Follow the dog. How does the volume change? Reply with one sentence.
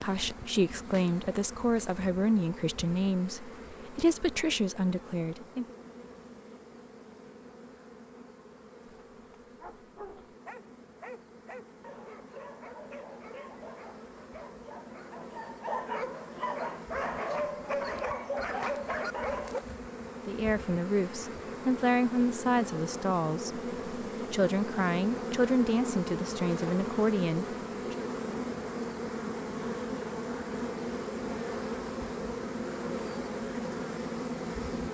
The loudness of the dog goes up.